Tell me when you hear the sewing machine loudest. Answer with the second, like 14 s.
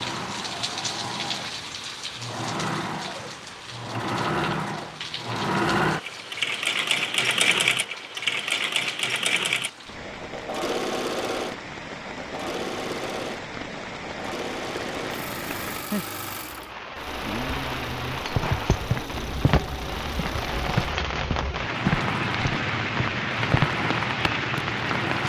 7 s.